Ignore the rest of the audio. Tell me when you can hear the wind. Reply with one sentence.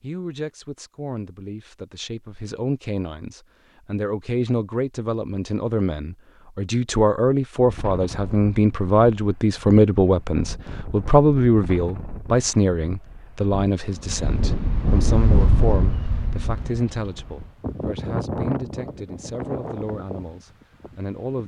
The wind can be heard from 7.5 to 21.4 s.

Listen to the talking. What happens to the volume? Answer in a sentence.
The loudness of the talking goes up, then down.